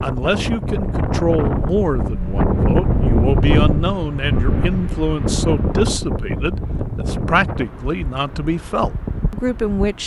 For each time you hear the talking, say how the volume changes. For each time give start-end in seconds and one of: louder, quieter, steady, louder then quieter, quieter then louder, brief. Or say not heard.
0.0-10.0 steady.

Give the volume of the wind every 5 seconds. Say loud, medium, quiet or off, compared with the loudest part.
loud, medium.